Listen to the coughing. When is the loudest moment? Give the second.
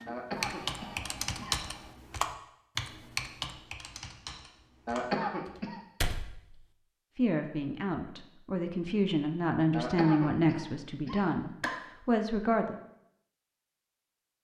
5 s.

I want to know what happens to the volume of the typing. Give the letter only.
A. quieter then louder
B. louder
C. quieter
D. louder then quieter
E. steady
A.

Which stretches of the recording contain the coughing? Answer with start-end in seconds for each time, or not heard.
0.1-1.6, 4.8-5.8, 9.7-11.8.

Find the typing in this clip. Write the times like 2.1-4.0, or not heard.
0.3-6.7.